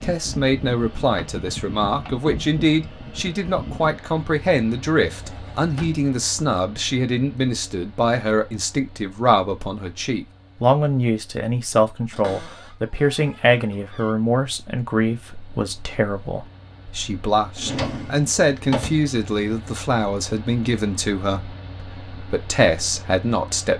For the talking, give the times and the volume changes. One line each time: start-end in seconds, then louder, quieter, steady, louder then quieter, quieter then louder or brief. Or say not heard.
0.0-23.7 steady.